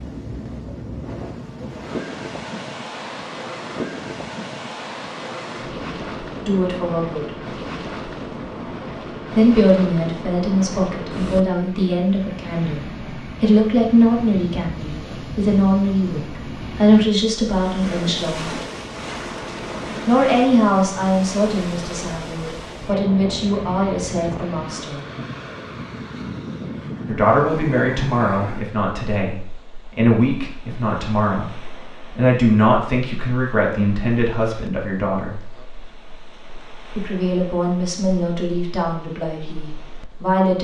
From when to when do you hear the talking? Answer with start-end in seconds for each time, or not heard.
6.3-7.2, 9.3-18.5, 20.1-25.0, 27.1-35.5, 37.0-40.5.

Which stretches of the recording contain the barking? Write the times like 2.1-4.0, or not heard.
not heard.